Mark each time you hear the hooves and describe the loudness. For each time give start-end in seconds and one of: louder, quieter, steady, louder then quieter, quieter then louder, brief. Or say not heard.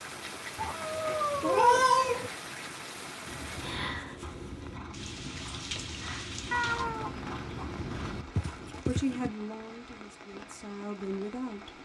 3.2-9.3 louder.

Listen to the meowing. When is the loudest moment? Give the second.
2 s.